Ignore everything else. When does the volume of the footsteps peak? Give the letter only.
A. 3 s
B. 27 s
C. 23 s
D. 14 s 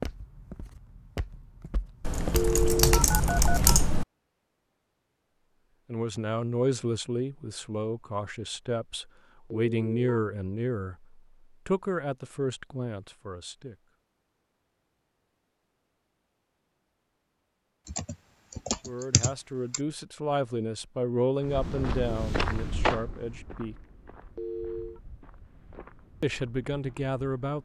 C.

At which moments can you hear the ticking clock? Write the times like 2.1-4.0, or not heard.
not heard.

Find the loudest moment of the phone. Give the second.
3 s.